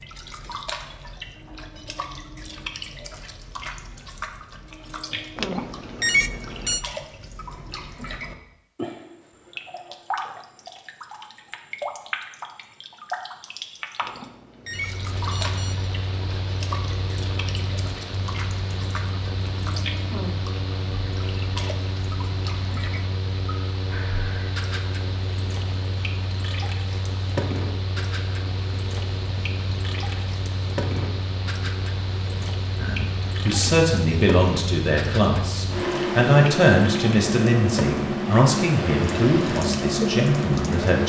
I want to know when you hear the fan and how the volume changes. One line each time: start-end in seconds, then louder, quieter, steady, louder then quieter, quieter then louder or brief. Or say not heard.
14.7-41.0 louder.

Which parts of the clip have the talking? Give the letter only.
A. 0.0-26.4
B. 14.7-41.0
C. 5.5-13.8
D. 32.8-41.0
D.